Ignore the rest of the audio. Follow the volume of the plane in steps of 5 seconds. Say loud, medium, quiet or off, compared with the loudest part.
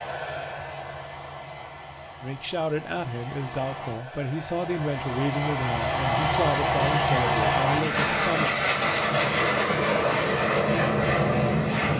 quiet, loud, loud.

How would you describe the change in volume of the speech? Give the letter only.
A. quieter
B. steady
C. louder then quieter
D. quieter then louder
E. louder
B.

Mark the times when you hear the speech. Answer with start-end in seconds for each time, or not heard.
2.2-8.6.